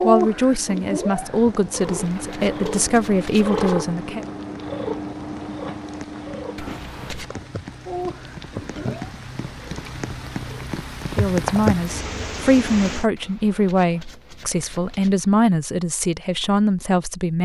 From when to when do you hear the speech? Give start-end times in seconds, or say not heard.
0.0-4.2, 11.2-17.3.